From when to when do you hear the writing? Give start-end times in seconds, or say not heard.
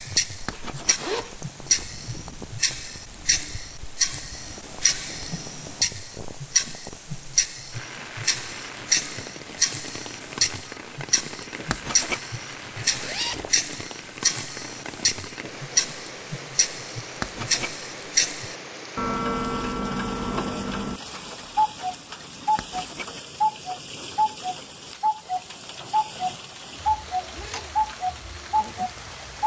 0.5-0.9, 11.7-12.2, 17.2-17.7, 22.6-23.1.